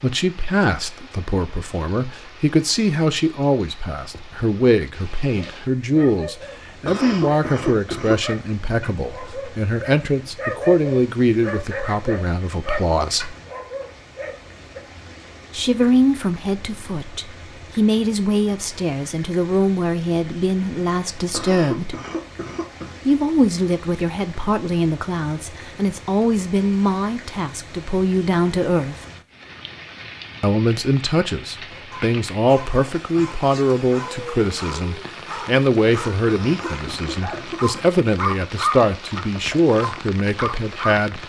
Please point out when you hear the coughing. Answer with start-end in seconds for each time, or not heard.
6.8-8.3, 21.3-22.9, 36.2-37.9.